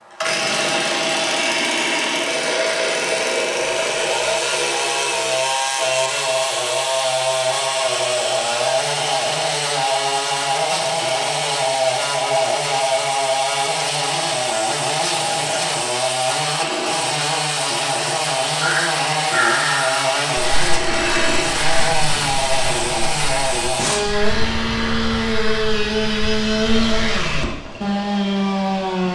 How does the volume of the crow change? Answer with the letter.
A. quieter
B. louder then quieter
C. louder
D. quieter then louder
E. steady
A.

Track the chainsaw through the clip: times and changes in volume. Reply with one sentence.
You can hear the chainsaw from 0.0 to 29.1 s, at a steady volume.